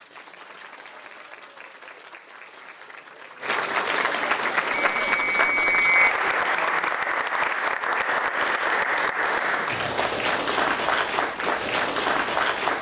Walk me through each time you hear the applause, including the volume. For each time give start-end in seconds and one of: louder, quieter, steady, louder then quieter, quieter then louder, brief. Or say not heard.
0.0-12.7 louder.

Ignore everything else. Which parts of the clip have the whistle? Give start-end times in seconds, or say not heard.
4.7-6.1.